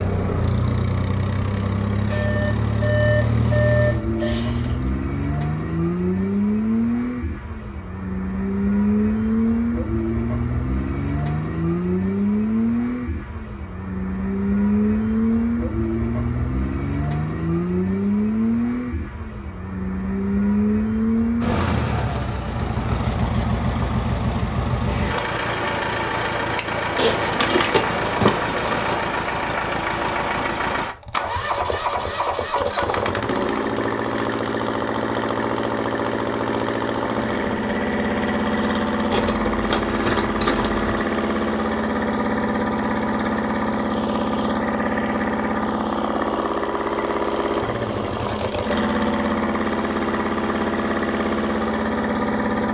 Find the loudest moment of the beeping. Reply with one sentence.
The loudest moment of the beeping is at 4 seconds.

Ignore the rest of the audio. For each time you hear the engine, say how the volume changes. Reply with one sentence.
The engine can be heard from 0.0 to 52.6 s, at a steady volume.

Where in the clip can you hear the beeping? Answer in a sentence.
You can hear the beeping from 2.0 to 4.3 s.